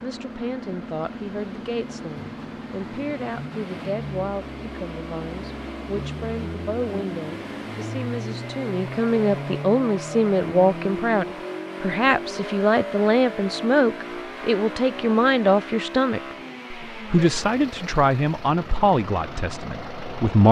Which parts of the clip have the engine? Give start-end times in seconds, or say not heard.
0.0-20.4.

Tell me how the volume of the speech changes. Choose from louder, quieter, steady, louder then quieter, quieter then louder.
louder.